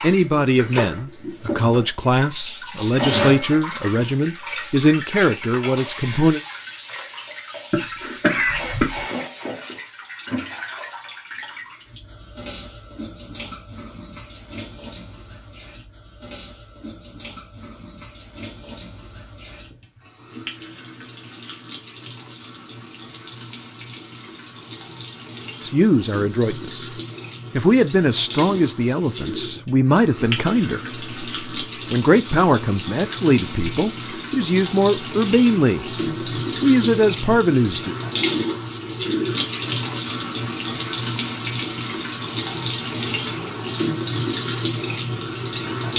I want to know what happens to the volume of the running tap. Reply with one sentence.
The loudness of the running tap goes down, then up.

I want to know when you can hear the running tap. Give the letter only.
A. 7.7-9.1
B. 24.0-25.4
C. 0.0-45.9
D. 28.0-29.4
C.